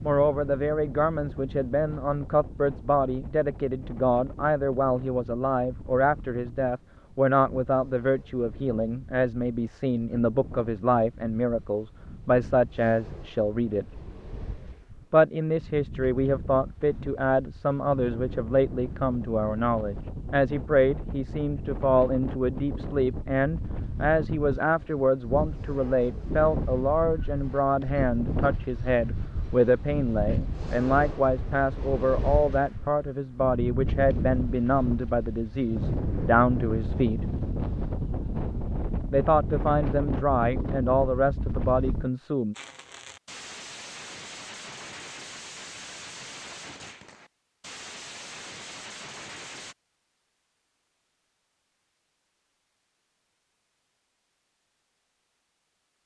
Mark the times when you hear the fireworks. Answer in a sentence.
You can hear the fireworks from 42.5 to 49.8 s.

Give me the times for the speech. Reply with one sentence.
You can hear the speech from 0.0 to 13.8 s, from 15.1 to 37.2 s and from 39.1 to 42.5 s.